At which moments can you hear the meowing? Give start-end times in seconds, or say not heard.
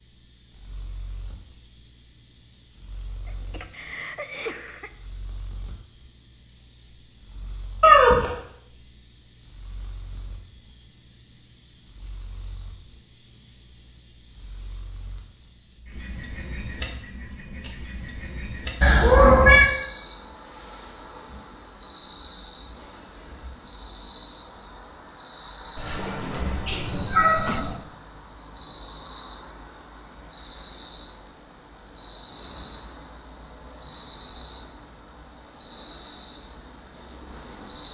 7.8-8.3, 18.8-19.7, 25.8-27.8.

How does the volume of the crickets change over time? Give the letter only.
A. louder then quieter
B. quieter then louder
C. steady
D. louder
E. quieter
C.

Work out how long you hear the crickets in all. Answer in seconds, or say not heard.
38 s.